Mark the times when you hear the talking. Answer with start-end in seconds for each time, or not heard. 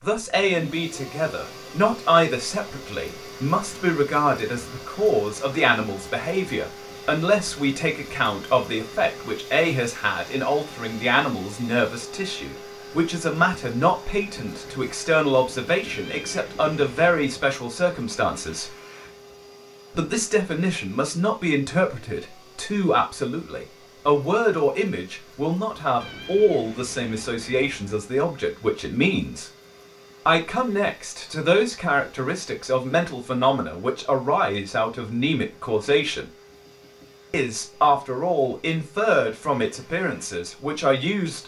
0.0-18.7, 19.9-29.5, 30.2-36.2, 37.3-41.4.